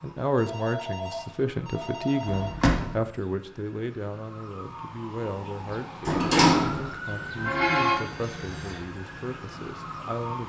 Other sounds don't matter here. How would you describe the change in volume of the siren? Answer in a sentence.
The volume of the siren goes up, then down.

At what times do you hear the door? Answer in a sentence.
You can hear the door from 2.2 to 3.0 s and from 6.0 to 6.9 s.